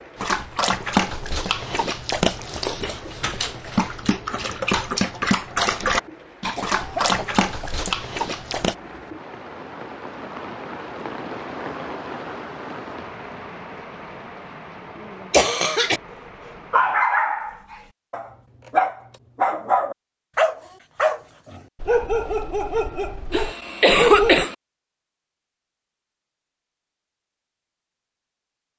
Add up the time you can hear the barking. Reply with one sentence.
You can hear the barking for 17 seconds altogether.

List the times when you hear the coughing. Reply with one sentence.
The coughing can be heard from 6.5 to 7.8 s, from 15.3 to 16.0 s and from 23.3 to 24.6 s.